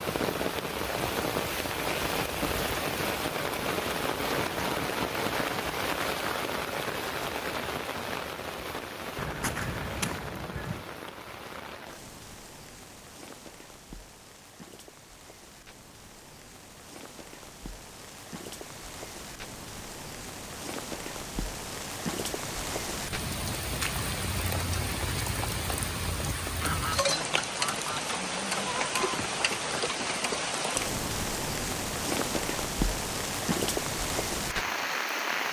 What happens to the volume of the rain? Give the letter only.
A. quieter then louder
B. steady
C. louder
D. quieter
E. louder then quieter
A.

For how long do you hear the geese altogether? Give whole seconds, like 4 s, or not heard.
4 s.